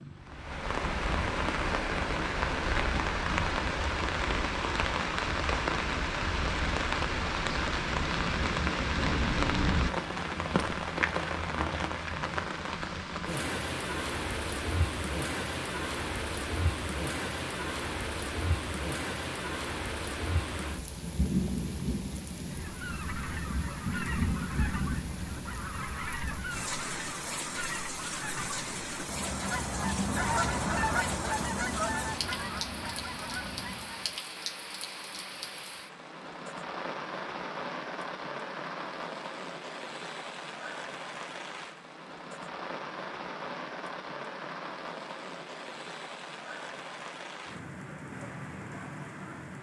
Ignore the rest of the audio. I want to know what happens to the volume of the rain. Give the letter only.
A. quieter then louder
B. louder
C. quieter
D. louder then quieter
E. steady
C.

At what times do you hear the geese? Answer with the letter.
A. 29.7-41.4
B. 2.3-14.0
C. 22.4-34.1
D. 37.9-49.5
C.